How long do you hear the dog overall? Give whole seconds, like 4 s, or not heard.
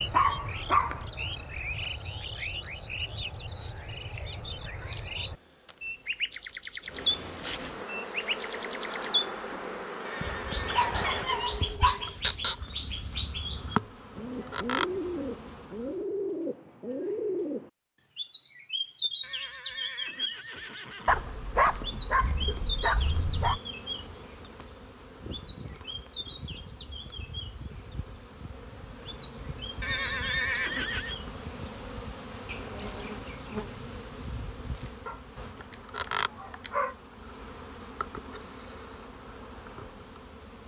7 s.